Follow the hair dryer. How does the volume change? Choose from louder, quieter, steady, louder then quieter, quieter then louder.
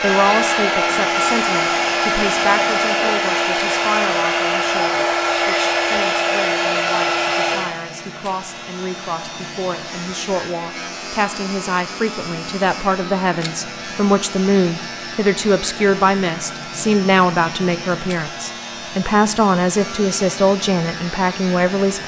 quieter.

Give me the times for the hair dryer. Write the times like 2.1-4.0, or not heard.
0.0-22.0.